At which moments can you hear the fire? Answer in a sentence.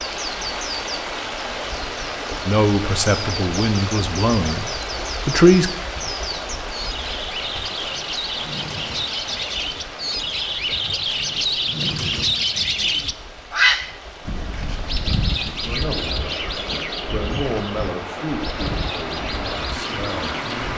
The fire can't be heard in this clip.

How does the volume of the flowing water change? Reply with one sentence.
The volume of the flowing water goes down, then up.